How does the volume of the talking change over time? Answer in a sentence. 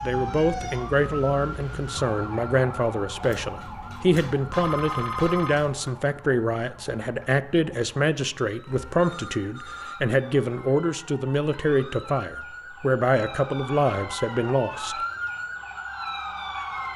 The loudness of the talking stays about the same.